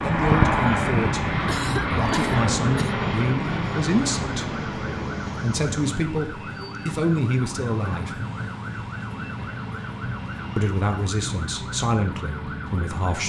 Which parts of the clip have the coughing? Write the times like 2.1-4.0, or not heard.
1.4-3.0.